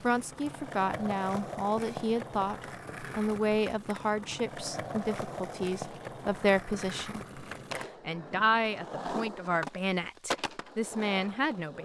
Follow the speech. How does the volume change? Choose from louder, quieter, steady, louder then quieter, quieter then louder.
steady.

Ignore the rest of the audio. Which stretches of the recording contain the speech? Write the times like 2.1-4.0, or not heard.
0.0-7.2, 8.1-11.8.